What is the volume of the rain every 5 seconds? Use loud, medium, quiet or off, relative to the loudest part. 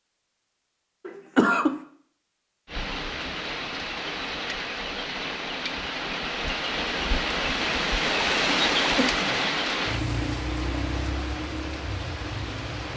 medium, loud, medium.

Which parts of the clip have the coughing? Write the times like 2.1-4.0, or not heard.
1.1-1.8, 8.9-9.4.